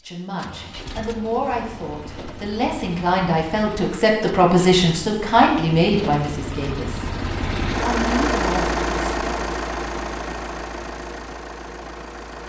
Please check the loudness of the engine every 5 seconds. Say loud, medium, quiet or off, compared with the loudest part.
quiet, loud, medium.